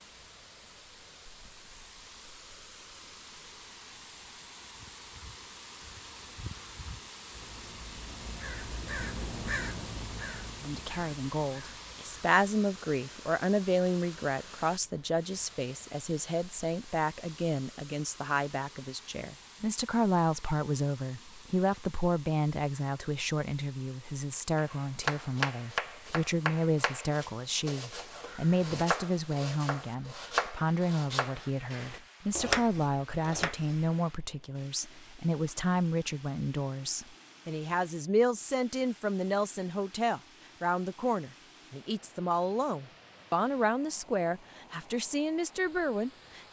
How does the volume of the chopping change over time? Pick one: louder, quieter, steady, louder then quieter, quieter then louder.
quieter then louder.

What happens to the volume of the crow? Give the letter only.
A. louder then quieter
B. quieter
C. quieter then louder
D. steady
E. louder
A.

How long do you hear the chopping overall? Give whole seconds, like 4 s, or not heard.
9 s.